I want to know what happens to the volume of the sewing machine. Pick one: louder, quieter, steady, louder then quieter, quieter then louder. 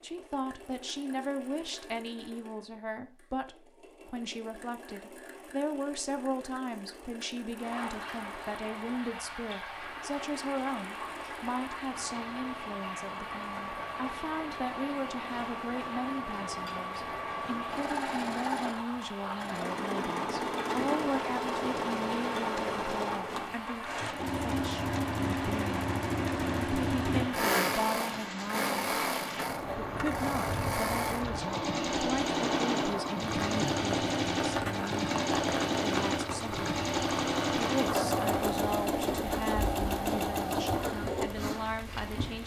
louder.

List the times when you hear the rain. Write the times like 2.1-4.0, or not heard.
7.5-42.4.